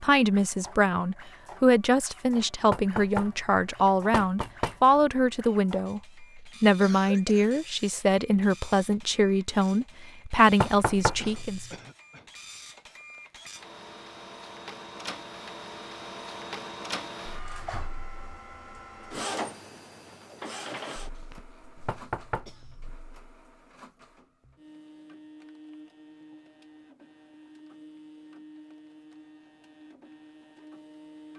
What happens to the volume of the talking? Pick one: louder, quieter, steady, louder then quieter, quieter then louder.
steady.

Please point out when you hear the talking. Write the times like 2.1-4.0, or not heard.
0.0-11.7.